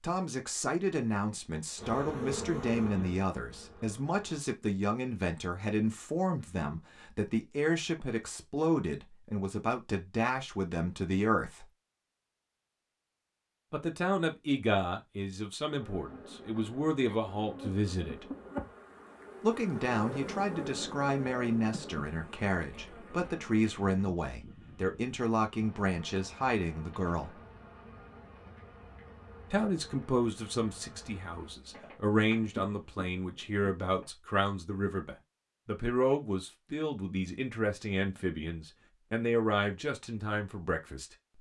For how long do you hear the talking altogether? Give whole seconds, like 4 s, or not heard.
36 s.